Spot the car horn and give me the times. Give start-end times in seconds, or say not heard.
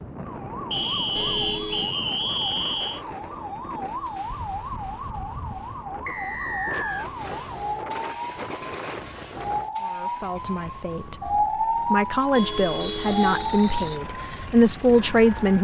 1.1-1.9, 12.3-13.6.